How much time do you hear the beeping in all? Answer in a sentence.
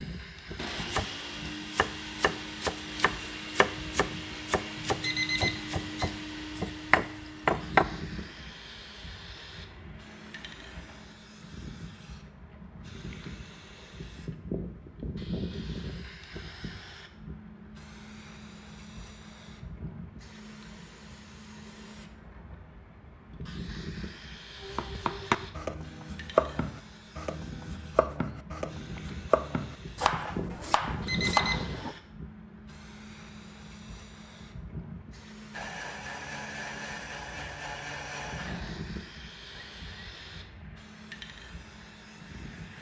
You can hear the beeping for 2 seconds altogether.